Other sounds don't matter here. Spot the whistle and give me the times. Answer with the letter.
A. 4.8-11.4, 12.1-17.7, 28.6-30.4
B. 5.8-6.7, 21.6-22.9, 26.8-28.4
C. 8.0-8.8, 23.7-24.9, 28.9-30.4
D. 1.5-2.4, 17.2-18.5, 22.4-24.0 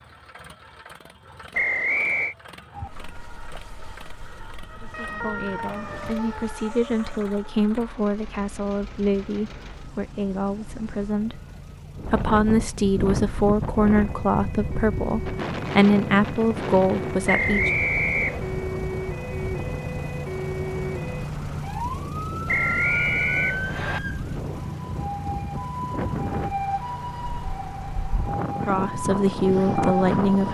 D.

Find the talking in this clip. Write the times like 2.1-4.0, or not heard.
4.8-11.4, 12.1-17.7, 28.6-30.4.